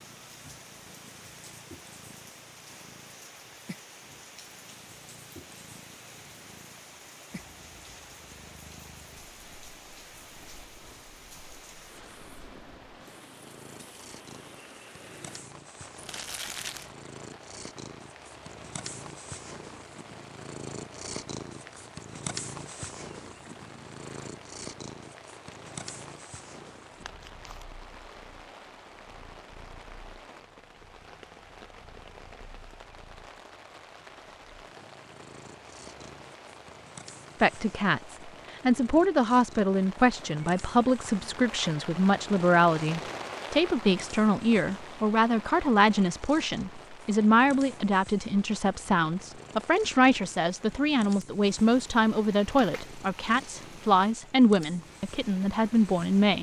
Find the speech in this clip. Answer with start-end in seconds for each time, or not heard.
37.4-56.3.